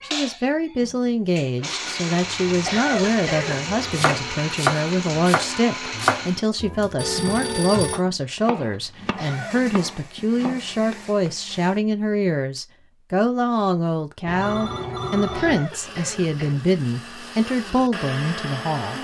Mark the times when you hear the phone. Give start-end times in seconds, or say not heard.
3.8-4.2, 7.0-8.0, 14.2-15.7.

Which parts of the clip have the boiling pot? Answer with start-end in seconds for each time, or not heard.
not heard.